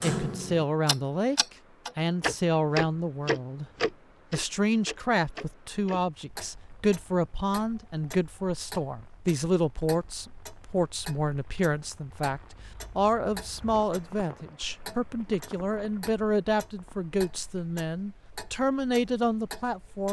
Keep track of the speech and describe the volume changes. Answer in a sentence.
The volume of the speech stays about the same.